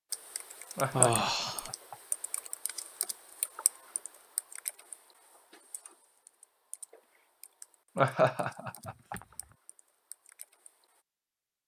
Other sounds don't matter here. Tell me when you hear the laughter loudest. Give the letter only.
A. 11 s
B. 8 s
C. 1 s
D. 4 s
B.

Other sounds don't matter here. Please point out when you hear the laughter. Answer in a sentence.
The laughter can be heard from 0.8 to 1.9 s and from 8.0 to 9.2 s.